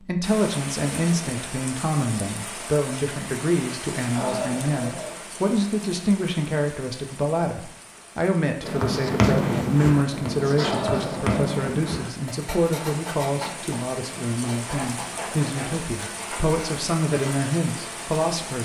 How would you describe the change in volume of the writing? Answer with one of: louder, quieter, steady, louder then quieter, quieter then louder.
quieter.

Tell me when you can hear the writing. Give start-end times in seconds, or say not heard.
8.6-17.5.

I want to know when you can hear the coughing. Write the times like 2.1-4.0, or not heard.
4.2-5.2, 10.6-11.3.